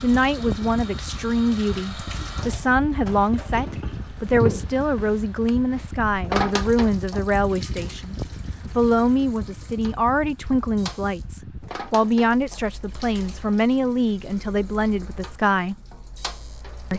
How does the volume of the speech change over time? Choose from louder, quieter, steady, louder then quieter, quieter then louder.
steady.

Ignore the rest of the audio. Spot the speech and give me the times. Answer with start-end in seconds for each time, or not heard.
0.0-15.8.